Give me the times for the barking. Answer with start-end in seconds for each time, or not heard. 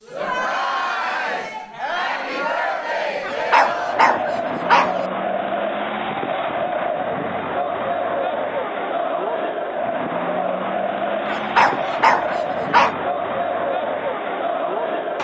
3.2-5.0, 11.2-12.9.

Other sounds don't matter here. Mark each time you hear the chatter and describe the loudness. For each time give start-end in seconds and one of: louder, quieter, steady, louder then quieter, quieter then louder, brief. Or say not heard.
0.0-15.1 steady.